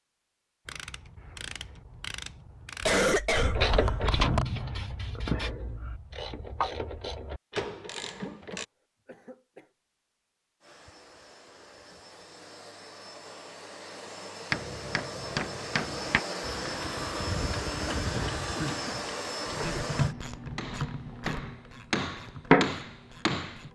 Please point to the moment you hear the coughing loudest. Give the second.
3 s.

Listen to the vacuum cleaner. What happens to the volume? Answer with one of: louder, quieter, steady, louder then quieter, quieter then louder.
louder.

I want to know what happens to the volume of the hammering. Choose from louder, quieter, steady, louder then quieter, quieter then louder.
quieter then louder.